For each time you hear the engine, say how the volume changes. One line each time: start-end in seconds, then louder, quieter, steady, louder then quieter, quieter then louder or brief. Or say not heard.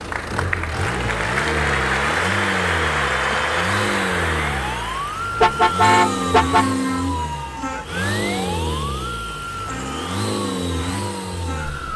0.0-11.9 steady.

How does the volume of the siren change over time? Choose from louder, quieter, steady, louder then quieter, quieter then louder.
louder then quieter.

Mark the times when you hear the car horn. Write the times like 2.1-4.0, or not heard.
5.4-6.7.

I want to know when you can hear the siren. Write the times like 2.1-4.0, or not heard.
0.1-11.9.